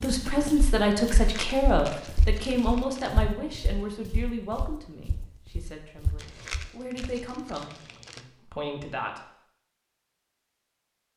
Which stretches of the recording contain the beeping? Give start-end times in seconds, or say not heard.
not heard.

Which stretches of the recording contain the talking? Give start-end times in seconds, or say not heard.
0.0-9.2.